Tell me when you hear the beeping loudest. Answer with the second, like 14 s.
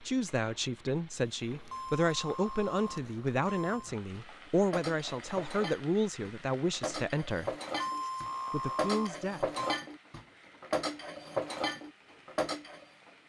8 s.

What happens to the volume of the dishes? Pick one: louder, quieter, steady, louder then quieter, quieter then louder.
louder.